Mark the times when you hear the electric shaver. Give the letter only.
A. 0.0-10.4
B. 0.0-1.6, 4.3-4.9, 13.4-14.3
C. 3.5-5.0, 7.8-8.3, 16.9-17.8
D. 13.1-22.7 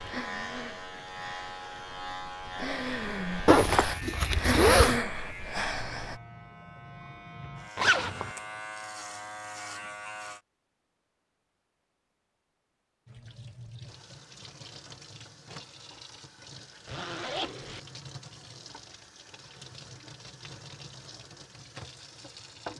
A.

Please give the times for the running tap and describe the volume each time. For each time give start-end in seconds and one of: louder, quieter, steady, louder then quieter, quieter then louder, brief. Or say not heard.
13.1-22.7 steady.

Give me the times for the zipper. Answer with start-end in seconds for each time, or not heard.
3.5-5.0, 7.8-8.3, 16.9-17.8.